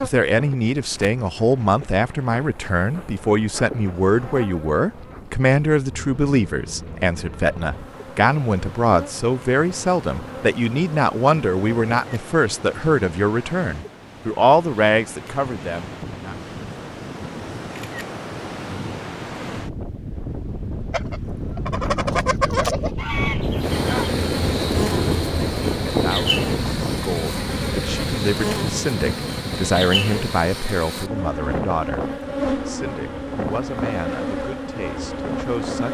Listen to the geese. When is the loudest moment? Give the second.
23 s.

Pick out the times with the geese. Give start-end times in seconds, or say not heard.
20.9-24.1.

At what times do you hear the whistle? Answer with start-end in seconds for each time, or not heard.
not heard.